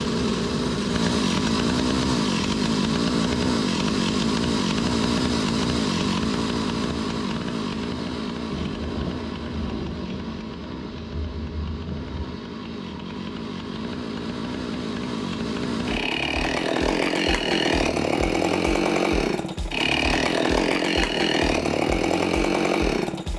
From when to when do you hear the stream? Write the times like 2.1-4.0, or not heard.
not heard.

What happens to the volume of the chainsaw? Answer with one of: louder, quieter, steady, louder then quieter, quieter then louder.
quieter then louder.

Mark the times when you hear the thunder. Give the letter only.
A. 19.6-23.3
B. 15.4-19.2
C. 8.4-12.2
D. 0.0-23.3
C.